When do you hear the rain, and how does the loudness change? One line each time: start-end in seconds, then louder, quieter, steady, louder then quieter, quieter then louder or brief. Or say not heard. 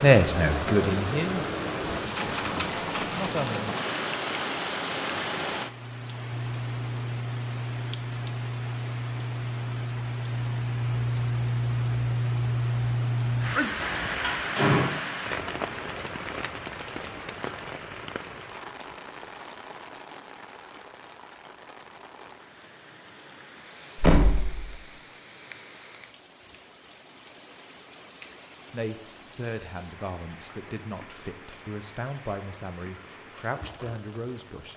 0.0-34.7 quieter.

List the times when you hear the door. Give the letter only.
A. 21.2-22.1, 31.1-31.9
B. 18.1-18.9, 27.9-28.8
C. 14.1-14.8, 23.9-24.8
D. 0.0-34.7
C.